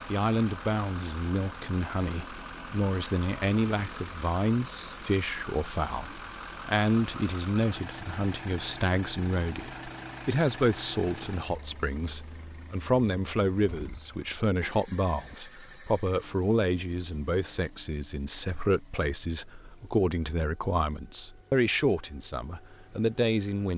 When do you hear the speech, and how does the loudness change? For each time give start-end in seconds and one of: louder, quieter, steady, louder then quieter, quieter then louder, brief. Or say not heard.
0.1-23.7 steady.